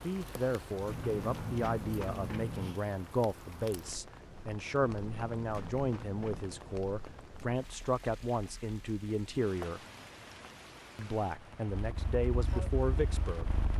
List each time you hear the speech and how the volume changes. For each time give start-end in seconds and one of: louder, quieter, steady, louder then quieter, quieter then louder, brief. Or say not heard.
0.0-9.8 steady
10.9-13.6 brief.